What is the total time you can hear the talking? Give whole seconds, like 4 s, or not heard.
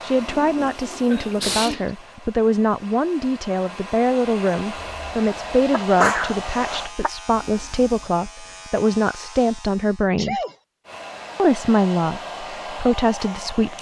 13 s.